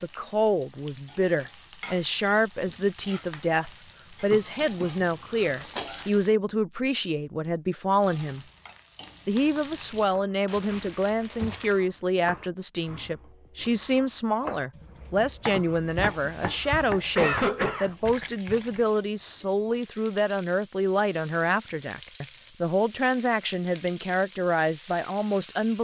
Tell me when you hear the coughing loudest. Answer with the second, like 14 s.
17 s.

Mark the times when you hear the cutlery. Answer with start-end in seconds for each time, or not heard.
not heard.